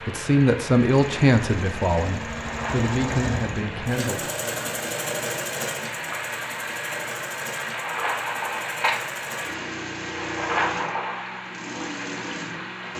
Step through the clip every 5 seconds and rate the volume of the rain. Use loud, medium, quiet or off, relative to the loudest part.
medium, loud, loud.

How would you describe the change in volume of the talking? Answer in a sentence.
The loudness of the talking goes down.